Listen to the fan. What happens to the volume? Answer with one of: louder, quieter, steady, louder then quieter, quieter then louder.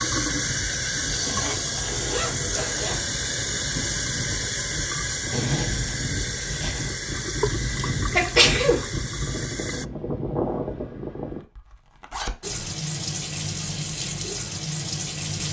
louder.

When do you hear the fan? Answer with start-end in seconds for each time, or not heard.
0.0-11.4.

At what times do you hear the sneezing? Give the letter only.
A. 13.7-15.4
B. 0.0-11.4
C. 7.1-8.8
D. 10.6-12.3
C.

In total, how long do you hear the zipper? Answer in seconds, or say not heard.
5 s.